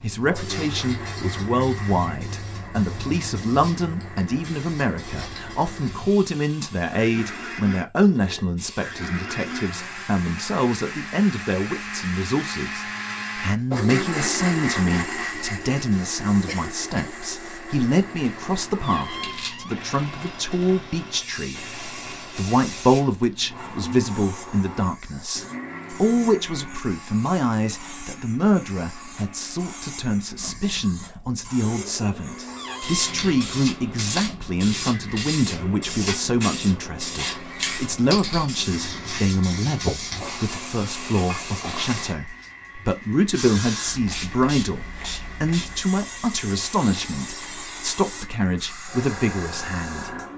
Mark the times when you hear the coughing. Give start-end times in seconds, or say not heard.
16.4-17.1.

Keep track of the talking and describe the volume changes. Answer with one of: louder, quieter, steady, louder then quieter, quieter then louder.
steady.